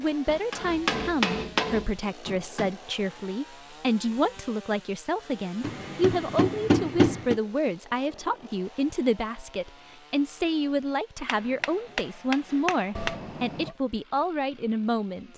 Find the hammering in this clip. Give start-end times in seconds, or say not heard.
0.2-2.7, 5.6-7.4, 11.2-13.2.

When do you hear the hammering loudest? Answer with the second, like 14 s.
7 s.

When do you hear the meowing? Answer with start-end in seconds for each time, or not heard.
12.9-13.8.